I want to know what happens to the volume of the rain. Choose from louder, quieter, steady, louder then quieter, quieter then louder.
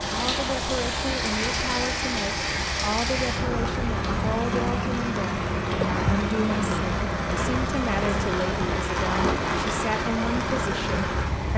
steady.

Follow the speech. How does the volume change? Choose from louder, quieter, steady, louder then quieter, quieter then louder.
steady.